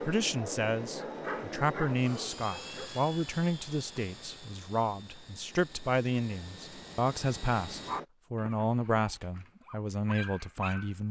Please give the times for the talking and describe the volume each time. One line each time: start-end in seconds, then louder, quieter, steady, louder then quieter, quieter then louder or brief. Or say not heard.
0.0-11.0 steady.